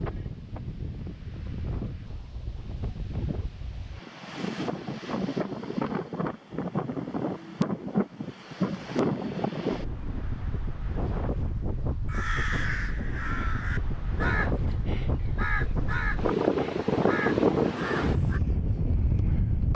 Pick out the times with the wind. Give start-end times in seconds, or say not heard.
0.0-19.7.